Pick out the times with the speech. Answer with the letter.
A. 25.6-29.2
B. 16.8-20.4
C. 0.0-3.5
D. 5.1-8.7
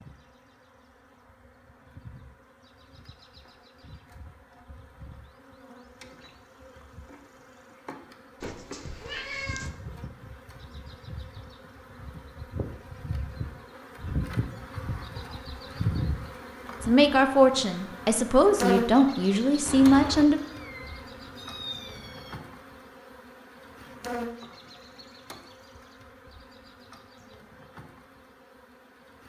B.